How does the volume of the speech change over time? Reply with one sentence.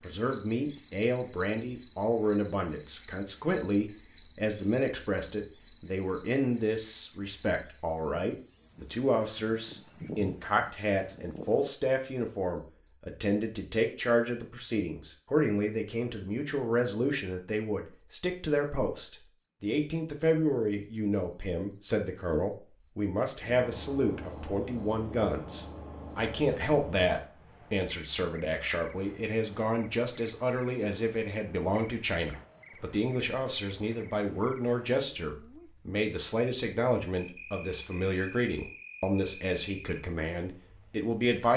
The volume of the speech stays about the same.